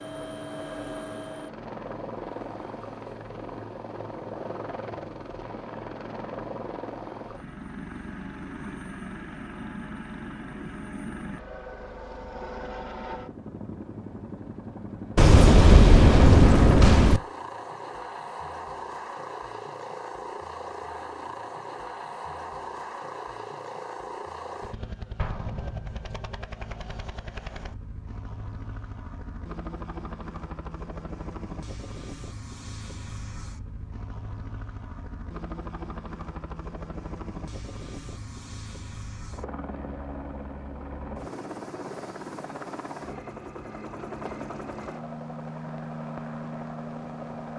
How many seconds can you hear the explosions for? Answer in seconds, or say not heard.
3 s.